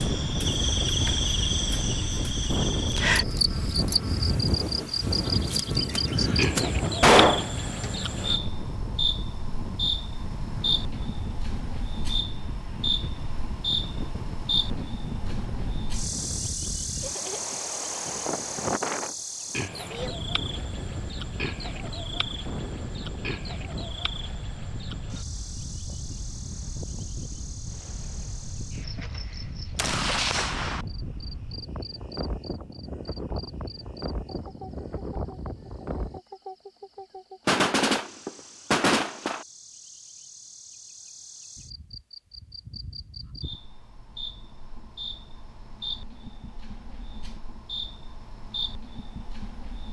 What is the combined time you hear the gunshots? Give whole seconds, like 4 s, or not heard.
5 s.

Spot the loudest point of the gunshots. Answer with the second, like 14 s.
7 s.